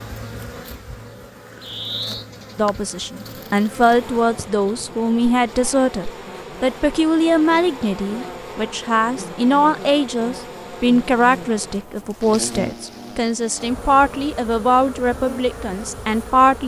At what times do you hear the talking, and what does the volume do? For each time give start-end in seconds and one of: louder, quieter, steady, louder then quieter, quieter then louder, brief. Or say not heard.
2.5-16.6 steady.